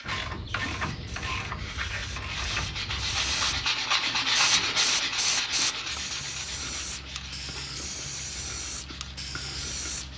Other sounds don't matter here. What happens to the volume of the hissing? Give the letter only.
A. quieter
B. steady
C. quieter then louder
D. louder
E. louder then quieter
E.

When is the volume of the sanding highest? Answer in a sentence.
The loudest moment of the sanding is at 4 seconds.